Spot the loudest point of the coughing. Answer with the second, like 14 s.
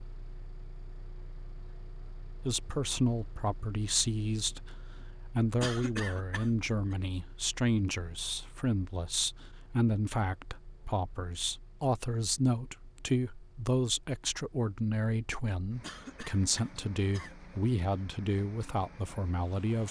6 s.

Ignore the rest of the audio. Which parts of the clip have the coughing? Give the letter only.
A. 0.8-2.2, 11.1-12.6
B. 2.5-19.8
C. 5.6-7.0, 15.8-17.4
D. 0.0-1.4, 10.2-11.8
C.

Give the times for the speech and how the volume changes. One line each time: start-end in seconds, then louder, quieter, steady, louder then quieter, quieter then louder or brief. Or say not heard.
2.5-19.8 steady.